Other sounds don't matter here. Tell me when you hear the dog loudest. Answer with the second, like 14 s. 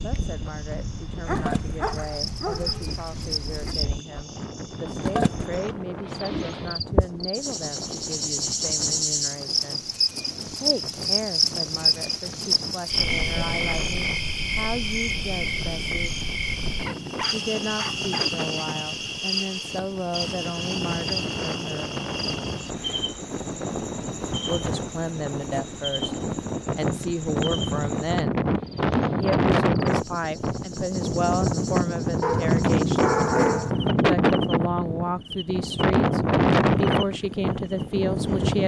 33 s.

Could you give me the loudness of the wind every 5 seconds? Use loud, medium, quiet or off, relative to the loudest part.
quiet, quiet, quiet, quiet, medium, loud, loud, loud.